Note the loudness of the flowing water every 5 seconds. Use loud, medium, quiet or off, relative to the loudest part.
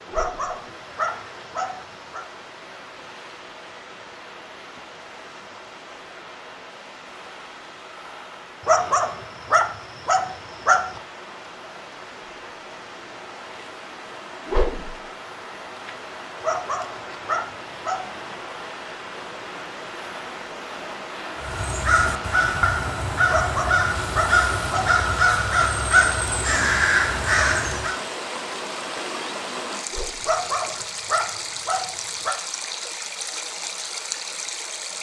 medium, medium, medium, medium, loud, loud, loud.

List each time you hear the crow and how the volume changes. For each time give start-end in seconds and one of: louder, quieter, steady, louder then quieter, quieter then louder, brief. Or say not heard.
21.4-27.9 steady.